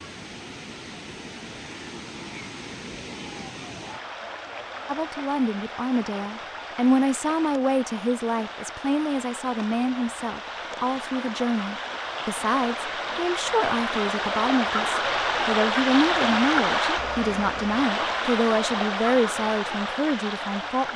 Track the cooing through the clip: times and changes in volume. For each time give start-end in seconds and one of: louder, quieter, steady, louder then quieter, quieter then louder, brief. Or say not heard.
not heard.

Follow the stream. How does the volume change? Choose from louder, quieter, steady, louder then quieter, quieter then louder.
louder.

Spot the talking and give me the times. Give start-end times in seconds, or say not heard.
4.8-20.9.